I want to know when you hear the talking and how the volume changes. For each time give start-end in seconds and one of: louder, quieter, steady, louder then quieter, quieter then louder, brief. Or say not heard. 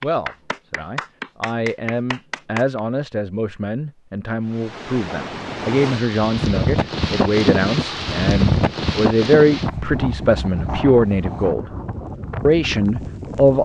0.0-11.6 louder
12.4-13.5 brief.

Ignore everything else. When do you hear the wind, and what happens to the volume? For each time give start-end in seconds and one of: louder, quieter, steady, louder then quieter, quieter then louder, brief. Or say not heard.
4.5-13.5 louder then quieter.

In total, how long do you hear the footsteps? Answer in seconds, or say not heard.
not heard.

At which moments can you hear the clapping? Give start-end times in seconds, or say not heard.
0.0-2.8.